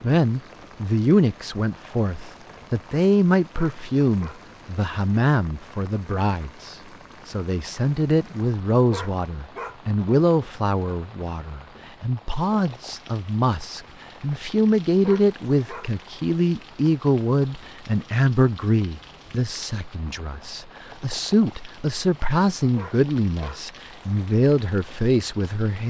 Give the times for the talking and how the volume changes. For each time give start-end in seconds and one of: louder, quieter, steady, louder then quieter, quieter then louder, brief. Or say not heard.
0.0-25.8 steady.